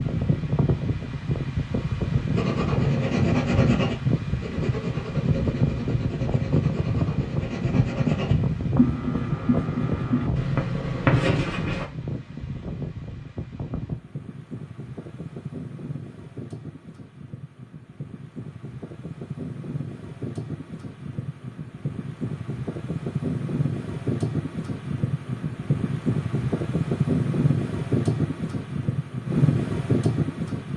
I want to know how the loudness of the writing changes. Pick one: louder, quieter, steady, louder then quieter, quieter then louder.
quieter then louder.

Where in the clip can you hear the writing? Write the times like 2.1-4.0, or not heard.
2.4-11.8.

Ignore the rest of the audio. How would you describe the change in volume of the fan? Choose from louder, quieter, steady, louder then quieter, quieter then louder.
quieter then louder.